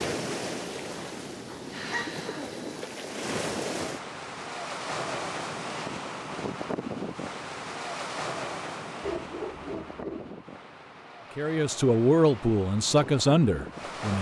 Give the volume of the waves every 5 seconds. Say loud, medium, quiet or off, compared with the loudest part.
loud, loud, medium.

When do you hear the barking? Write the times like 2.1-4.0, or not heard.
0.8-2.5, 9.0-10.3.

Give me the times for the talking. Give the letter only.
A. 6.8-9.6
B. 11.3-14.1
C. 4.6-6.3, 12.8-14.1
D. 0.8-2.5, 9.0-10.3
B.